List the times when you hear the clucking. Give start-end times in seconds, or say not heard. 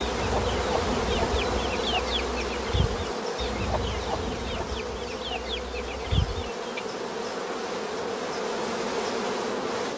0.0-6.8.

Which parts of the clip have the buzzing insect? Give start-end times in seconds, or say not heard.
0.0-9.9.